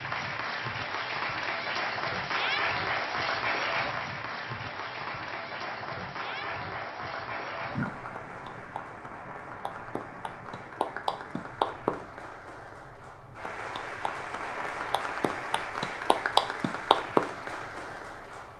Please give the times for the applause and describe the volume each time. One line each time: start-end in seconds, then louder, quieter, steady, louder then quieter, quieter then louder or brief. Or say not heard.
0.0-18.5 quieter then louder.